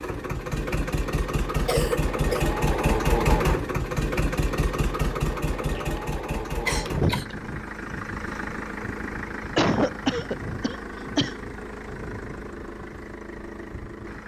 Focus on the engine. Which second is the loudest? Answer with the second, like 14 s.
3 s.